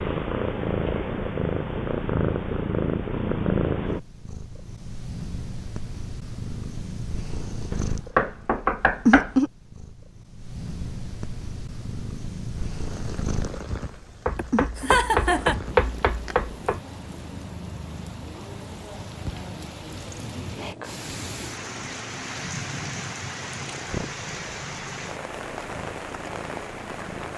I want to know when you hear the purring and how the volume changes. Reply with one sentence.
You can hear the purring from 0.0 to 27.3 s, getting quieter.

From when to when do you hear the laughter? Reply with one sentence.
The laughter can be heard from 14.3 to 15.6 s.